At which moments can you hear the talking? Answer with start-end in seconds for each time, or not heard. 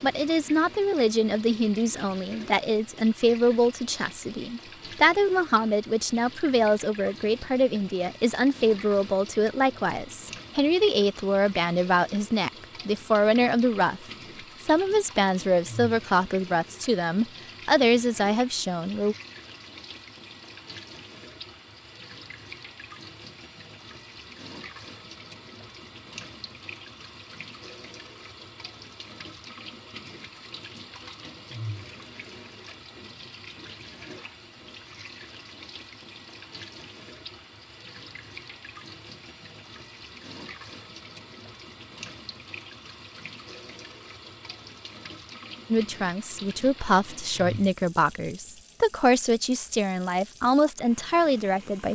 0.0-14.0, 14.6-19.1, 45.7-51.9.